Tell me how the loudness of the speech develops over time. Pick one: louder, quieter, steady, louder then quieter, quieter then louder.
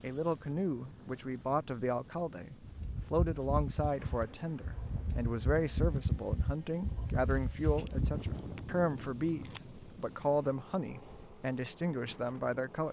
steady.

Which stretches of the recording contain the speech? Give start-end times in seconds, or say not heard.
0.0-12.8.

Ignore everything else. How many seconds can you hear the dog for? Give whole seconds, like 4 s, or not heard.
not heard.